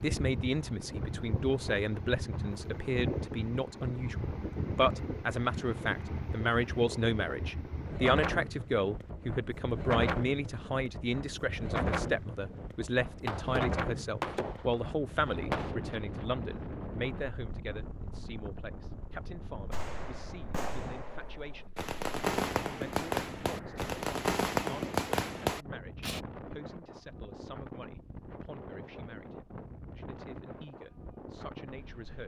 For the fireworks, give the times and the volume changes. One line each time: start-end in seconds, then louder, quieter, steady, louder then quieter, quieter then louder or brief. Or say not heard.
13.1-15.8 brief
19.7-26.2 louder.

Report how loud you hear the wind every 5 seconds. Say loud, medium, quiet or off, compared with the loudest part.
loud, loud, loud, medium, medium, medium, medium.